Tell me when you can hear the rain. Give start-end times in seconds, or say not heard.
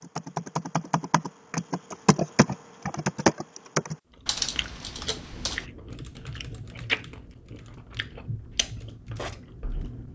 not heard.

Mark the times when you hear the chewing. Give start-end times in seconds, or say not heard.
4.4-10.1.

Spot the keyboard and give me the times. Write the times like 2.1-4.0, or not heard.
0.0-10.1.